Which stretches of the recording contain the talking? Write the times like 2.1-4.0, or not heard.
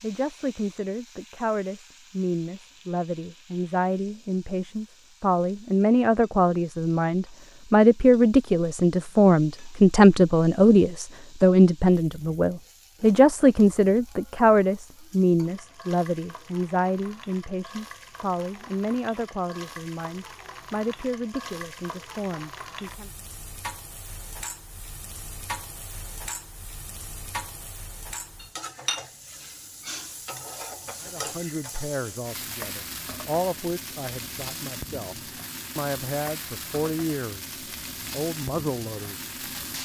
0.0-23.1, 31.0-39.2.